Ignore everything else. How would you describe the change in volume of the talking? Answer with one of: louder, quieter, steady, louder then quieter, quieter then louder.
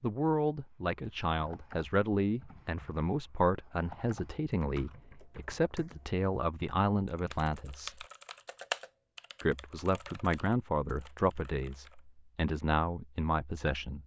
steady.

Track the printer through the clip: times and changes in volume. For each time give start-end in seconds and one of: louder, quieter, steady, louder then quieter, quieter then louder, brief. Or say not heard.
not heard.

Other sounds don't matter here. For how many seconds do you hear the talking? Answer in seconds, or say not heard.
13 s.